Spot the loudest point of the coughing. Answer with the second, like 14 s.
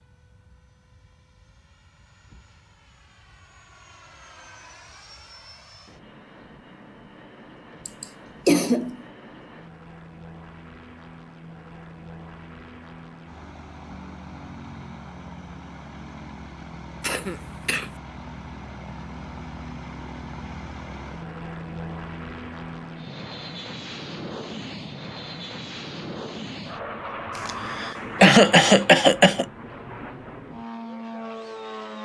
28 s.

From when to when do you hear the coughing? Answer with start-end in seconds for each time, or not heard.
7.8-9.0, 17.0-17.9, 27.4-29.4.